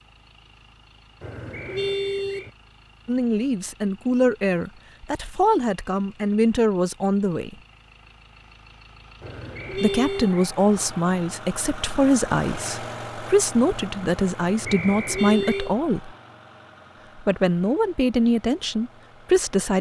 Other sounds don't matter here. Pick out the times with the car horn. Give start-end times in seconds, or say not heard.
1.2-2.5, 9.2-10.3, 14.6-15.8.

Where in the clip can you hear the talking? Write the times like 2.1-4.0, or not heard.
3.0-7.5, 9.7-16.1, 17.1-19.7.